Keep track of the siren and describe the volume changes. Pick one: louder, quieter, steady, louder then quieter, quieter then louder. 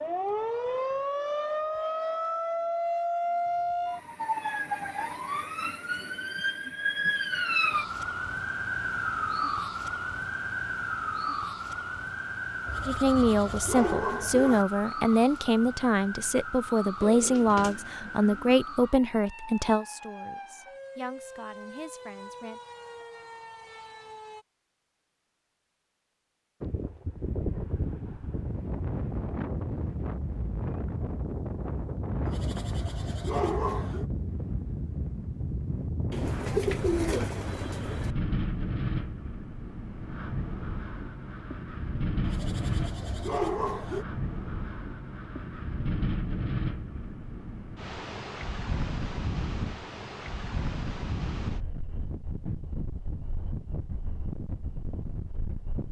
quieter.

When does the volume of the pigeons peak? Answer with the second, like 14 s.
37 s.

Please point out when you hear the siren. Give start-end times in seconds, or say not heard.
0.0-24.4.